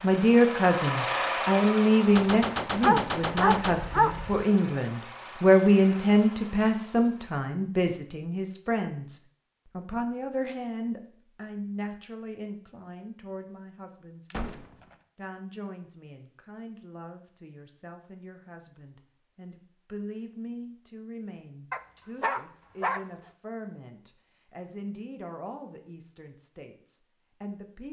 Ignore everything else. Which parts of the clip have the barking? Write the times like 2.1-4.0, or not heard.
2.8-4.5, 21.7-23.0.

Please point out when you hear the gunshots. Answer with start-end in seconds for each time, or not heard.
2.1-3.8, 14.3-14.9.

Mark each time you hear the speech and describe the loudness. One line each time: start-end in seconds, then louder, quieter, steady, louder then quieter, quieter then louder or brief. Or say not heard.
0.0-27.8 quieter.